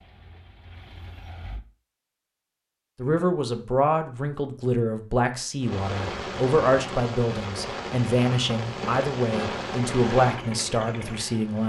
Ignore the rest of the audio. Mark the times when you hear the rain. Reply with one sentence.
The rain can be heard from 5.6 to 11.6 s.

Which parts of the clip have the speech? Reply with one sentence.
The speech can be heard from 3.0 to 11.6 s.